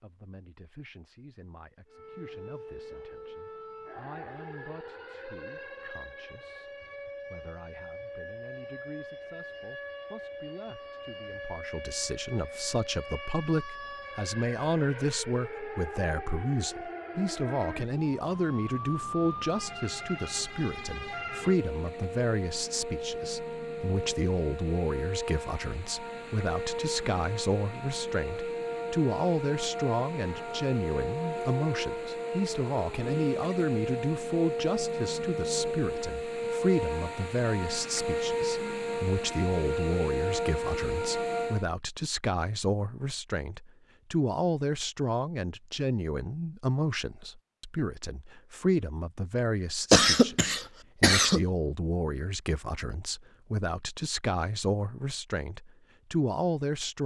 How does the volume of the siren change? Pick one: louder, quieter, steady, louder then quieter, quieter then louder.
louder.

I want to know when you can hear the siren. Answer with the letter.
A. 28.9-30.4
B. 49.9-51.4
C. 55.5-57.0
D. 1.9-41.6
D.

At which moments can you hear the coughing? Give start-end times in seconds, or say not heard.
49.9-51.4.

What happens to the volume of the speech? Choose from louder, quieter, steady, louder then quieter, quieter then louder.
louder.